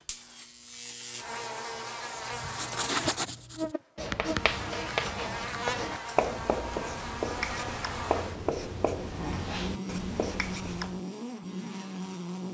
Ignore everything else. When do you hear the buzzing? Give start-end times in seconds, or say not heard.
0.0-12.5.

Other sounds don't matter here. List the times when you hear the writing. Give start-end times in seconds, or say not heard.
2.1-11.0.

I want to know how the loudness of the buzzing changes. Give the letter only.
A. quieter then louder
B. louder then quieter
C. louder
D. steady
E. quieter
D.